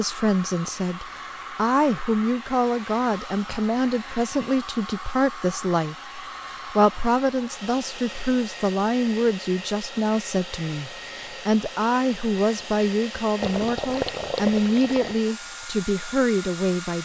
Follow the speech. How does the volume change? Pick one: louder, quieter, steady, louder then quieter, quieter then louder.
steady.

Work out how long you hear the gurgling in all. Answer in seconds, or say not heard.
2 s.